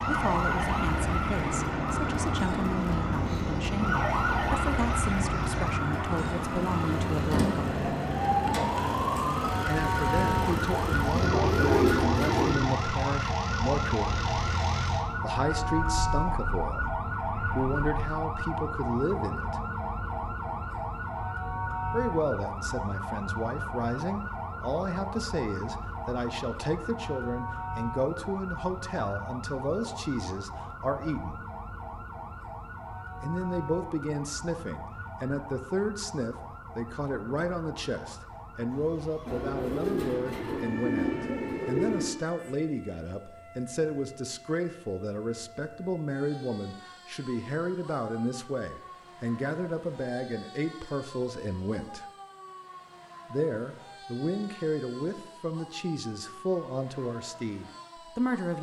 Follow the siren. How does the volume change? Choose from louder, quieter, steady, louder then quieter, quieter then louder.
quieter.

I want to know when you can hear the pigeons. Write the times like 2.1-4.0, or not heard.
11.1-12.7, 39.2-42.1.